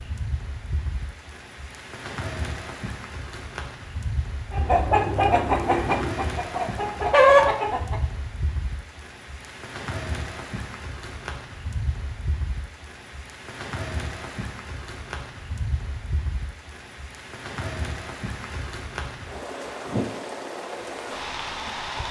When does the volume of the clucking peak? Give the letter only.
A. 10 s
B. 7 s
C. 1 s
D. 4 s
B.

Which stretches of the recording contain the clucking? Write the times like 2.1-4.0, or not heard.
4.5-8.0.